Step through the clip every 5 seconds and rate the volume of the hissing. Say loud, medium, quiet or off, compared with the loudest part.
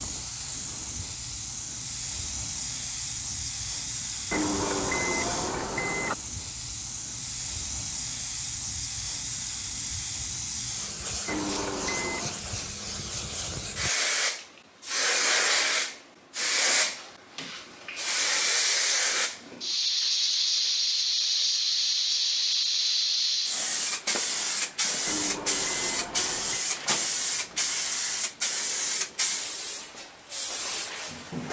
medium, medium, medium, loud, loud, loud, medium.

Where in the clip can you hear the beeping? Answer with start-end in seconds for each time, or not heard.
4.3-6.2, 11.2-12.4, 25.1-26.6.